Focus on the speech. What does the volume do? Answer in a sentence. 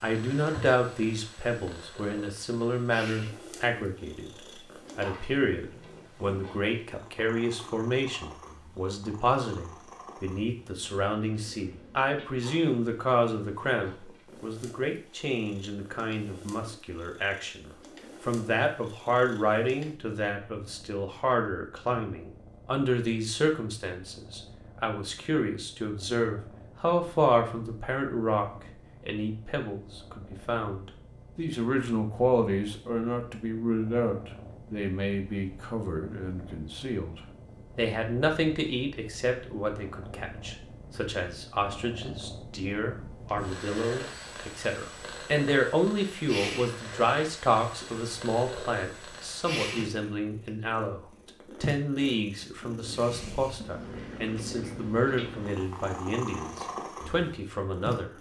The volume of the speech stays about the same.